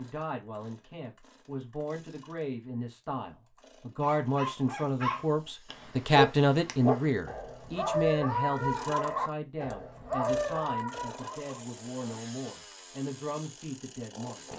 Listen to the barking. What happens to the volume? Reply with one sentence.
The loudness of the barking stays about the same.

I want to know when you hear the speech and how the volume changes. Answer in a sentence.
The speech can be heard from 0.0 to 14.5 s, getting louder then quieter.